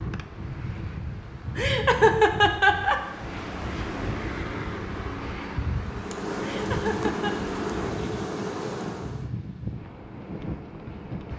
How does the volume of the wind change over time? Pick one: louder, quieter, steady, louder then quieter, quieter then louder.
steady.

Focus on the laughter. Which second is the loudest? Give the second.
2 s.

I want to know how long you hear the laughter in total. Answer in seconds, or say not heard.
2 s.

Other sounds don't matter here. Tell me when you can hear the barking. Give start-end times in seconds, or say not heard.
not heard.